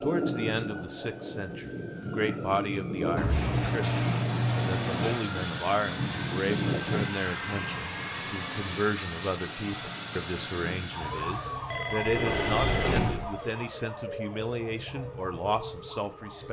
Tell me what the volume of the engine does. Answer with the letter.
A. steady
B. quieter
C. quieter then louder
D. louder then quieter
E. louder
A.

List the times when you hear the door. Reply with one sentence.
You can hear the door from 3.1 to 5.2 s and from 12.1 to 13.3 s.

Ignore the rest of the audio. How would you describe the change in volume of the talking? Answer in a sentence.
The volume of the talking stays about the same.